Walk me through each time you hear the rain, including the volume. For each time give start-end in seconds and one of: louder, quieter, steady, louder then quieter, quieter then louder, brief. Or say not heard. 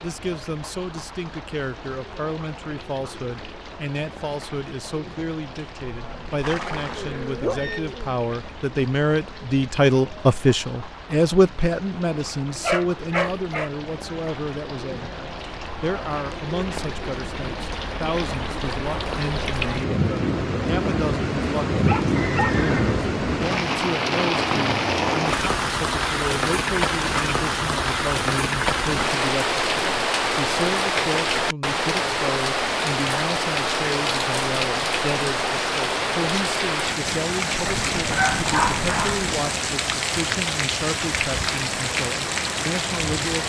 0.0-43.4 louder.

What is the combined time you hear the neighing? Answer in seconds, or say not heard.
4 s.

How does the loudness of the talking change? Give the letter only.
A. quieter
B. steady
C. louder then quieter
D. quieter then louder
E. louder
C.